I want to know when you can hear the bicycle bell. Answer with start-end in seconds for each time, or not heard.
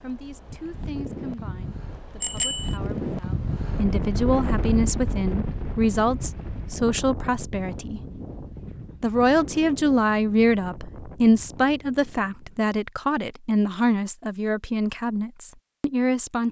2.2-2.8.